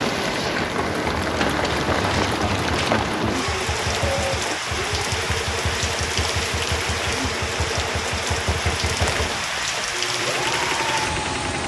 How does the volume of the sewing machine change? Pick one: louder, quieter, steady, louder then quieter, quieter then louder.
steady.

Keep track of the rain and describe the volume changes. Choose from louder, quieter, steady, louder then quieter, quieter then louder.
steady.